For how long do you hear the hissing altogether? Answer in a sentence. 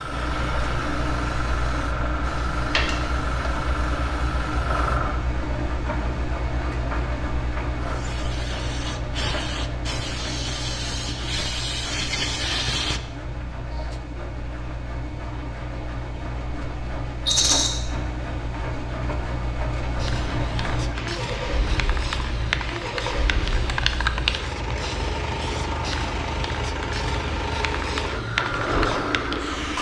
The hissing can be heard for 21 seconds in total.